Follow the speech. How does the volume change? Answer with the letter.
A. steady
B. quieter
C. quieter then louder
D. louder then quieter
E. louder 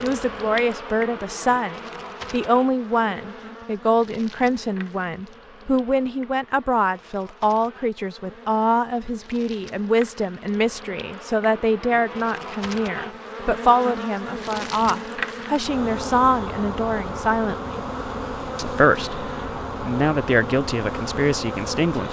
A.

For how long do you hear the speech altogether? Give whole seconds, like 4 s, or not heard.
21 s.